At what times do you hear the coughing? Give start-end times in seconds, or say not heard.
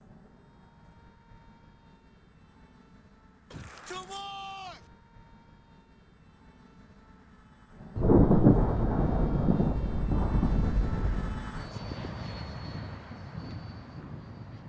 not heard.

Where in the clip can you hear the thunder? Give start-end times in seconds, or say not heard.
8.0-11.4.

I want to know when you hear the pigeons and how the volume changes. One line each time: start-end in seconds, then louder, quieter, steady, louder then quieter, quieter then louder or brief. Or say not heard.
not heard.